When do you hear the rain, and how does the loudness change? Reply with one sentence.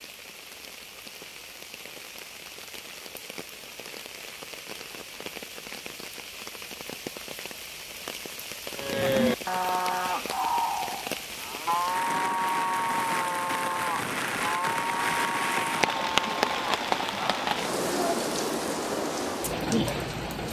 You can hear the rain from 0.0 to 20.4 s, getting louder.